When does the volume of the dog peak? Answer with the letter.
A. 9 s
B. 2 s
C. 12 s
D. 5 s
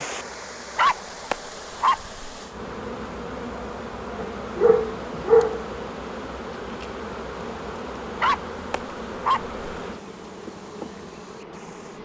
D.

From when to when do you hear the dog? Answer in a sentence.
The dog can be heard from 0.8 to 2.1 s, from 4.2 to 5.7 s and from 8.2 to 9.5 s.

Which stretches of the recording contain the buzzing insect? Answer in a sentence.
You can hear the buzzing insect from 0.0 to 11.9 s.